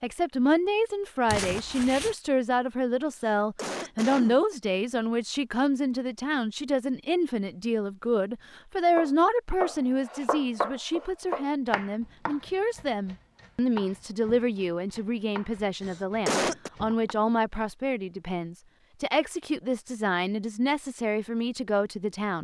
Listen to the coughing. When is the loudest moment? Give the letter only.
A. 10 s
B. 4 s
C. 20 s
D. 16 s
D.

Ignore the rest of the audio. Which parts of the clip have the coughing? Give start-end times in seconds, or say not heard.
3.2-4.5, 15.8-16.7.